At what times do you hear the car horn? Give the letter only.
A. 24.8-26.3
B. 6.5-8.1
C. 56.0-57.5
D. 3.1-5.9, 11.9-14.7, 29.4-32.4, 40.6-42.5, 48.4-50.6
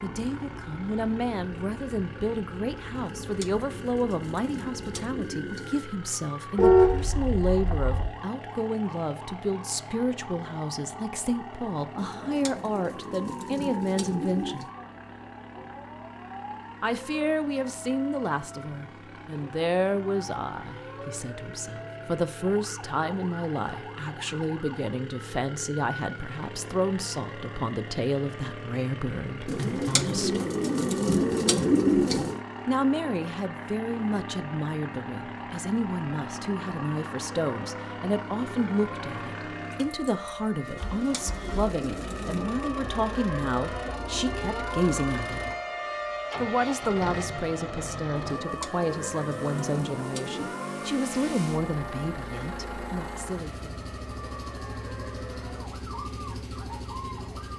B.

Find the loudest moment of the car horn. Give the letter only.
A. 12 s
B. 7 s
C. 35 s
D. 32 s
B.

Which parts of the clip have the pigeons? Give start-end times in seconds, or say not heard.
3.1-5.9, 11.9-14.7, 29.4-32.4, 40.6-42.5, 48.4-50.6.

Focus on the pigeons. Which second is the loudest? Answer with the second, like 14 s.
32 s.